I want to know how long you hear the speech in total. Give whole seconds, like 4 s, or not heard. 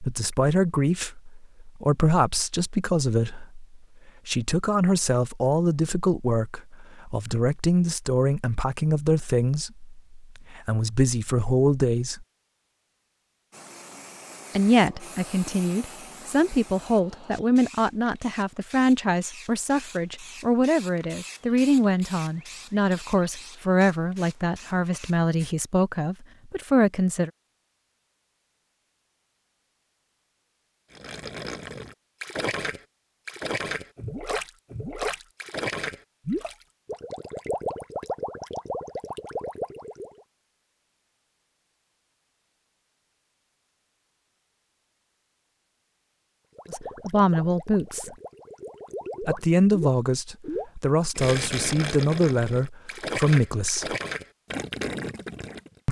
31 s.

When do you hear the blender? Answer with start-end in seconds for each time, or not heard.
not heard.